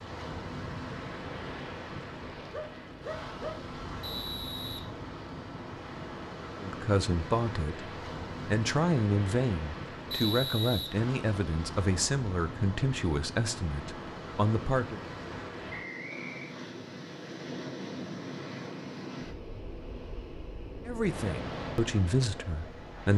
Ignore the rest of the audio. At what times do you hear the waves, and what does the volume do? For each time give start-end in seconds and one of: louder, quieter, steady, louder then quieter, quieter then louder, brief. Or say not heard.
0.0-23.1 steady.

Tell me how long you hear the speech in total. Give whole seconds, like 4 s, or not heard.
10 s.